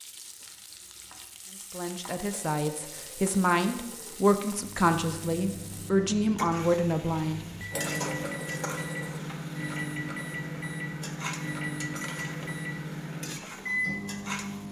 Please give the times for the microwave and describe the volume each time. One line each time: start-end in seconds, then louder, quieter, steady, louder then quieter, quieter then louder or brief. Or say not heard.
4.5-14.6 louder.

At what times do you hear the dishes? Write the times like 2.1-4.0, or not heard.
2.3-4.2, 7.7-9.2.